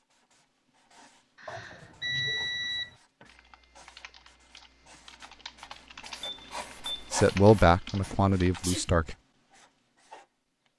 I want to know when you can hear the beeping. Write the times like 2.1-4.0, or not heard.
1.4-3.0, 6.2-7.1.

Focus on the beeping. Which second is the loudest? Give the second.
2 s.